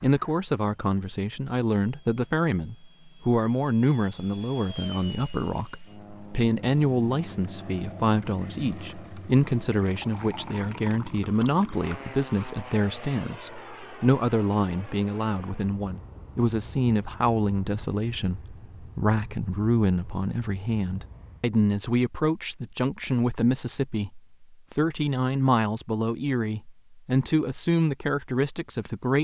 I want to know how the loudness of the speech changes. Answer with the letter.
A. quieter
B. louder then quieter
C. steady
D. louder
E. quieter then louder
C.